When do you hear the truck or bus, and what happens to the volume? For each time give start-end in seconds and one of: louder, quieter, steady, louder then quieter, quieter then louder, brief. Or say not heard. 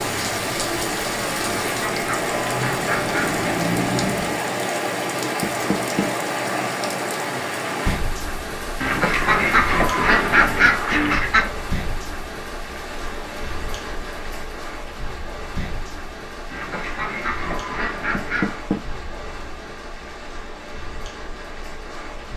0.1-4.5 louder.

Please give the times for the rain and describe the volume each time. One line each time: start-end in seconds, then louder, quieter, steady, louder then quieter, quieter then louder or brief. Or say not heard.
0.0-22.3 quieter.